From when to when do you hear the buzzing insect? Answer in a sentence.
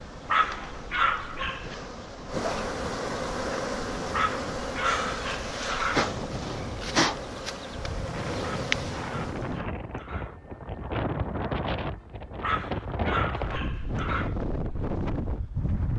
You can hear the buzzing insect from 0.0 to 9.6 s.